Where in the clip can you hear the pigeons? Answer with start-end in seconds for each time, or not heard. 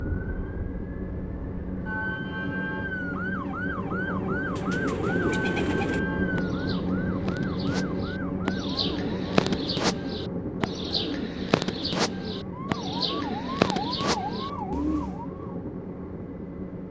4.5-15.2.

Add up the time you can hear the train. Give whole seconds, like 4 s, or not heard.
17 s.